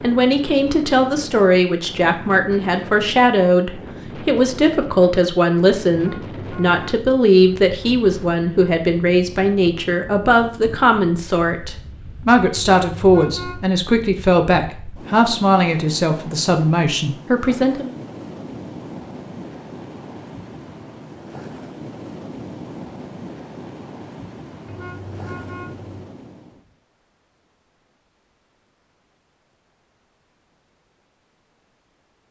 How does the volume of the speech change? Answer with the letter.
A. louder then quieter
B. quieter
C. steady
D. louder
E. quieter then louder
C.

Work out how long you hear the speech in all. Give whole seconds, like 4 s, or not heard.
18 s.